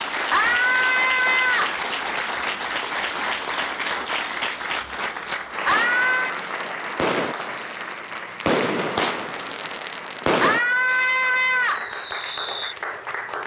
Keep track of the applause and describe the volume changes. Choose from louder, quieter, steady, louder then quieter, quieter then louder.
quieter.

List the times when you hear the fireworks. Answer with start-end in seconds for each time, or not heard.
5.7-12.8.